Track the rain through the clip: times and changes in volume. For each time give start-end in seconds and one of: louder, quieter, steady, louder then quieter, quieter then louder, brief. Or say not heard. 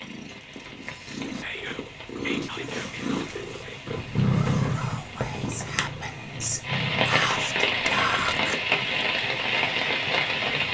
0.0-10.6 louder.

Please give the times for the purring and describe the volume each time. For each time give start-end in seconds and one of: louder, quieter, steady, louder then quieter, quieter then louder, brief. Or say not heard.
0.0-10.6 louder then quieter.